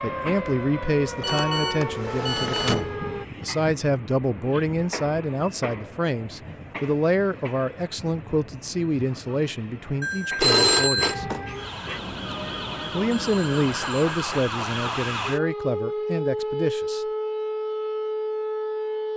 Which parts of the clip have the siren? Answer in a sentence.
You can hear the siren from 0.0 to 3.2 s and from 11.1 to 19.1 s.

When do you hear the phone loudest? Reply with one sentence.
The volume of the phone peaks at 11 seconds.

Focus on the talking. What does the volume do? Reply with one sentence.
The volume of the talking stays about the same.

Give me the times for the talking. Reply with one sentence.
The talking can be heard from 0.0 to 11.2 s and from 12.9 to 17.1 s.